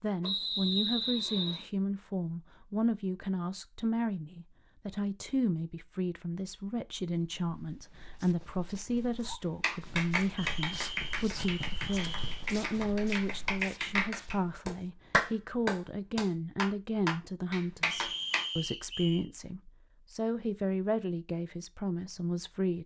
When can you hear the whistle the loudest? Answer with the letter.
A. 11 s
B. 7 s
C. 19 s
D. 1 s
D.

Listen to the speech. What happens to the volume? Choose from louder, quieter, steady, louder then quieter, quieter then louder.
steady.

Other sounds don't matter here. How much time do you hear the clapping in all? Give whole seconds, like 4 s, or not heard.
9 s.